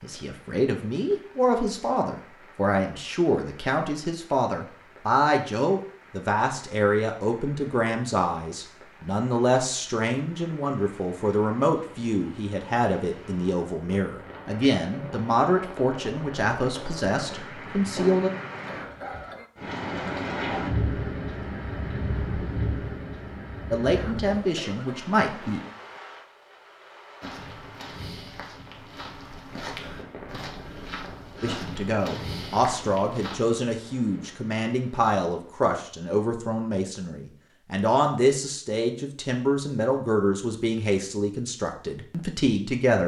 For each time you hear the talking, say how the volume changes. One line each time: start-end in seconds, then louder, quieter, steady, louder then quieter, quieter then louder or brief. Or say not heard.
0.0-18.3 steady
23.7-25.6 brief
31.4-43.0 steady.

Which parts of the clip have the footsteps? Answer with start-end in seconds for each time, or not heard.
27.2-33.4.